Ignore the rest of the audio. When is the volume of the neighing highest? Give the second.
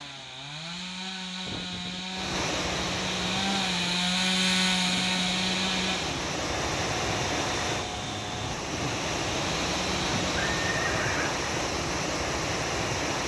11 s.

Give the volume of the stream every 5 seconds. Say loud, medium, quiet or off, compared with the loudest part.
medium, loud, loud.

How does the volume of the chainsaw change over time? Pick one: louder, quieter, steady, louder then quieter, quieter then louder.
louder then quieter.